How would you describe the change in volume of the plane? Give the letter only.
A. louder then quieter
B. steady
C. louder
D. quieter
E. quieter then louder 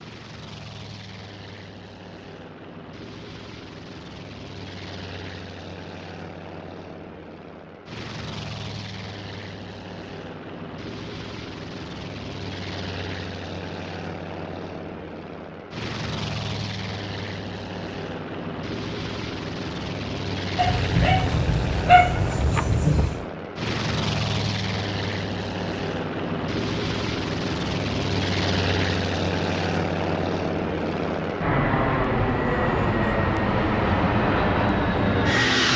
C.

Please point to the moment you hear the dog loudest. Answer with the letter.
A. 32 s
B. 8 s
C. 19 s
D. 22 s
D.